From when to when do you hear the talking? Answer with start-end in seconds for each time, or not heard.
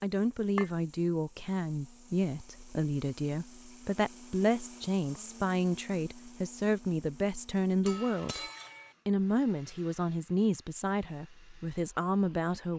0.0-8.4, 9.1-12.7.